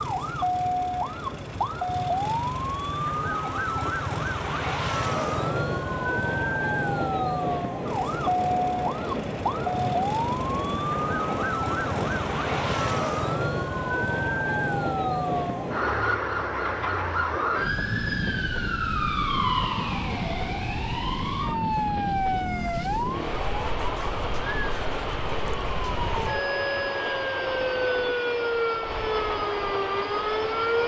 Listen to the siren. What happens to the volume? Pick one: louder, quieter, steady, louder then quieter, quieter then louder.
steady.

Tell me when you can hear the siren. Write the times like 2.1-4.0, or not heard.
0.0-30.8.